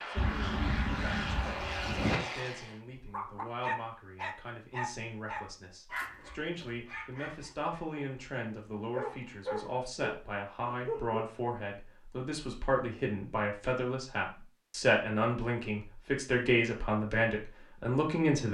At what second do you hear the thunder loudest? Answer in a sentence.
The loudest moment of the thunder is at 2 seconds.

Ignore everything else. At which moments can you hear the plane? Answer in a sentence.
You can hear the plane from 0.0 to 2.8 s.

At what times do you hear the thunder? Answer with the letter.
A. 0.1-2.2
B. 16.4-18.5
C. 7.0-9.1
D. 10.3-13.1
A.